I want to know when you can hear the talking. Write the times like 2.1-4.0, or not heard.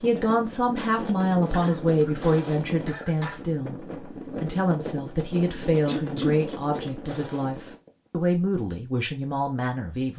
0.0-3.8, 4.4-10.1.